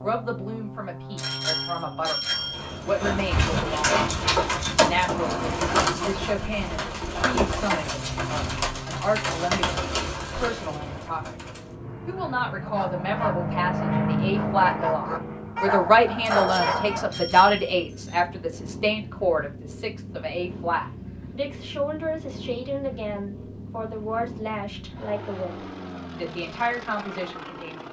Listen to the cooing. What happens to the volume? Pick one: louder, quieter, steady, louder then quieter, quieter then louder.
quieter.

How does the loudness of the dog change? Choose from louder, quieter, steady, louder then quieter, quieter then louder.
louder.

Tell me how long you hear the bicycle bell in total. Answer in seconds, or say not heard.
4 s.